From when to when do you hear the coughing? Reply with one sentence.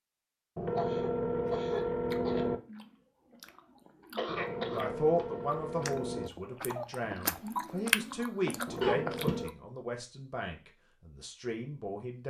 The coughing can be heard from 0.8 to 2.5 s, from 4.2 to 5.3 s and from 8.8 to 9.4 s.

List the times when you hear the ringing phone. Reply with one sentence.
You can hear the ringing phone from 0.6 to 2.6 s, from 4.2 to 6.3 s and from 8.7 to 9.6 s.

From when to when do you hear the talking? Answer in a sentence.
You can hear the talking from 4.7 to 12.2 s.